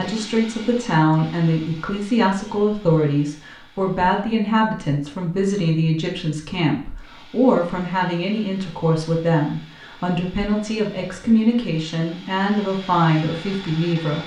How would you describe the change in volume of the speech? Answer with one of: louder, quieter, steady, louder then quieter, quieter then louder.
steady.